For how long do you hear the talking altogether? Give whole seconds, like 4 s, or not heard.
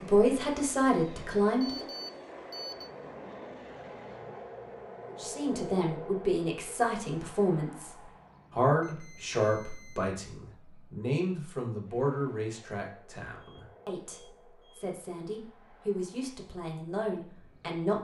15 s.